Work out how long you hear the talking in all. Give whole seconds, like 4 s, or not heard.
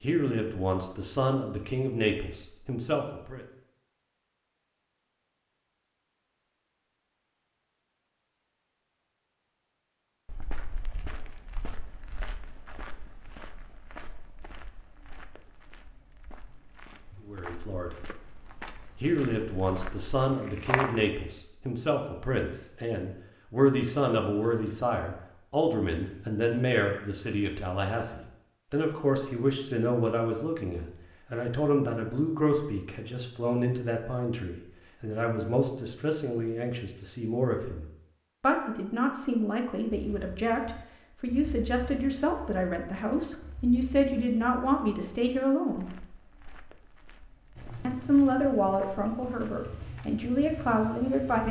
35 s.